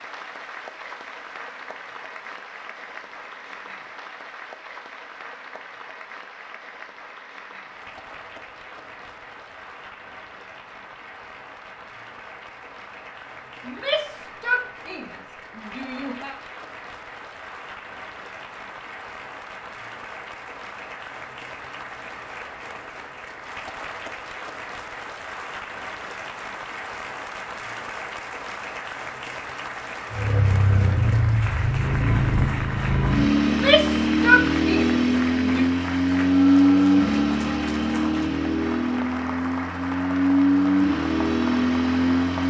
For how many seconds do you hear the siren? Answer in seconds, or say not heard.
not heard.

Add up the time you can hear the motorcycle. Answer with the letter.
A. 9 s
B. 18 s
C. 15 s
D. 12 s
D.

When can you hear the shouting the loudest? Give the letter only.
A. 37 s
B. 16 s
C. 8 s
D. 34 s
D.